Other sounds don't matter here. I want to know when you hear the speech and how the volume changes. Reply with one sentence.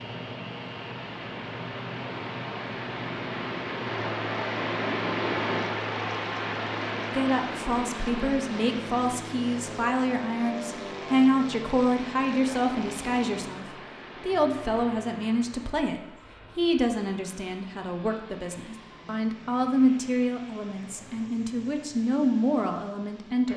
The speech can be heard from 7.1 to 23.5 s, at a steady volume.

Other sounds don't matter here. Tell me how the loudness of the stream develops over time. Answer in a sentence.
The loudness of the stream goes up, then down.